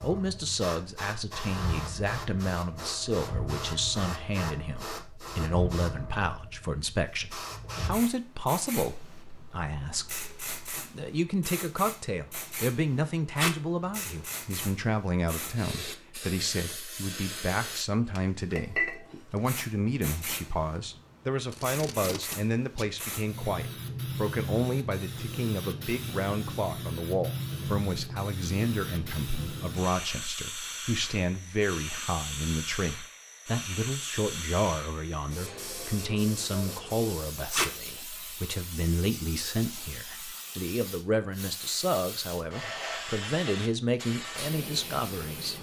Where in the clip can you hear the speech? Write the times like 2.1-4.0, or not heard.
0.0-45.5.